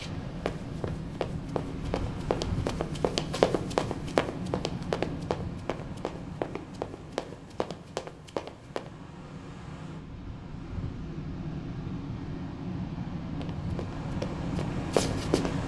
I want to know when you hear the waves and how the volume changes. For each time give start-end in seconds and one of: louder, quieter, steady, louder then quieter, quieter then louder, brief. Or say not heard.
0.0-15.6 quieter then louder.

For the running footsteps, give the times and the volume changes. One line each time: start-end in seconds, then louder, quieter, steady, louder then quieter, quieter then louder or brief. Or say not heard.
0.0-8.9 louder then quieter
13.4-15.6 brief.